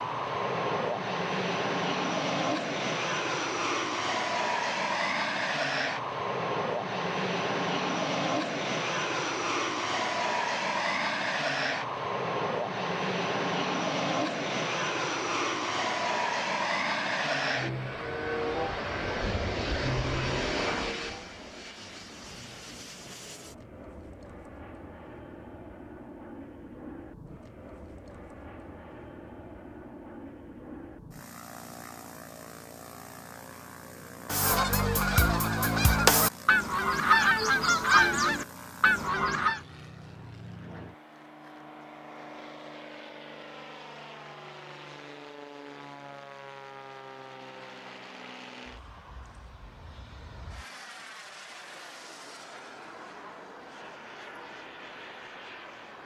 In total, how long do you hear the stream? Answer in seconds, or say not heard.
not heard.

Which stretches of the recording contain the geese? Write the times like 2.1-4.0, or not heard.
34.2-39.6.